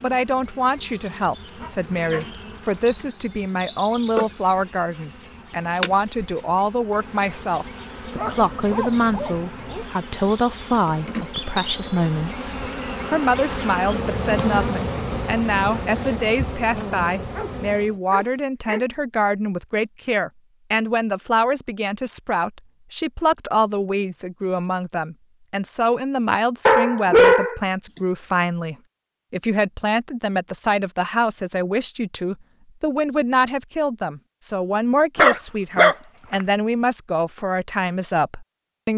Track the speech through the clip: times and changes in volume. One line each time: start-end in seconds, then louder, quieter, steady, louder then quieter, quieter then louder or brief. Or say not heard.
0.0-38.9 steady.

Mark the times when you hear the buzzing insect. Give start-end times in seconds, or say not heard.
0.0-18.0.